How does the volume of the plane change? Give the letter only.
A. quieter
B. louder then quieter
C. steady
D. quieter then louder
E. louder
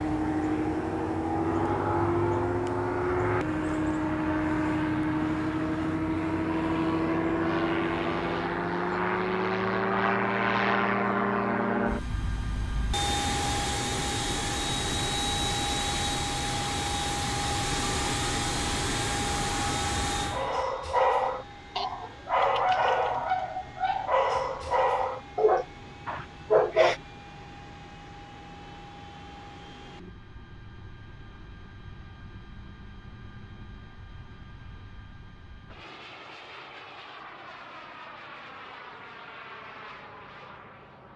A.